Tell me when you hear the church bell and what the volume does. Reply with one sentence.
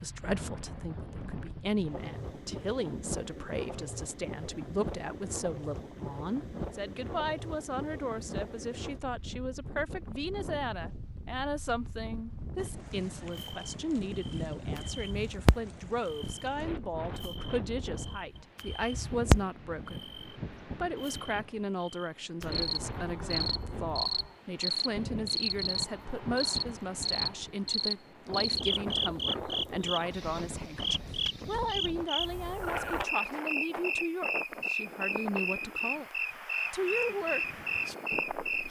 The church bell can't be heard in this clip.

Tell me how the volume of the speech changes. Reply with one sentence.
The volume of the speech stays about the same.